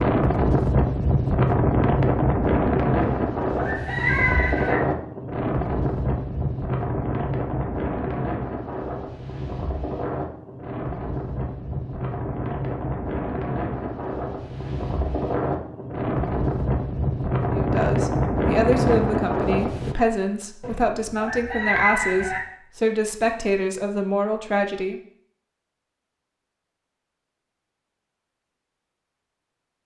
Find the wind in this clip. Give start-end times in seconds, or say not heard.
0.0-19.9.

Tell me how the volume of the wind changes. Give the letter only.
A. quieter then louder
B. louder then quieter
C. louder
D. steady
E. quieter
A.